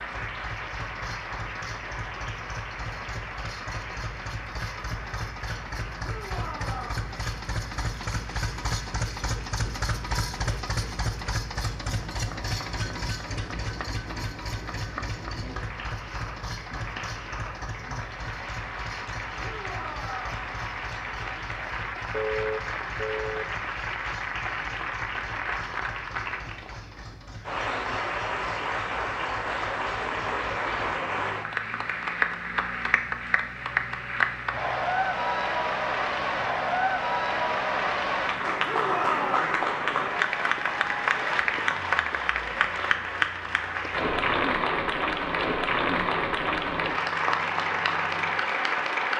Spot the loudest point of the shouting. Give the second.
39 s.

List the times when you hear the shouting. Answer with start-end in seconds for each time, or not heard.
6.0-7.0, 19.4-20.4, 38.6-39.5.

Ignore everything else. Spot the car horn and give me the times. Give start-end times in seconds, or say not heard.
22.1-23.4.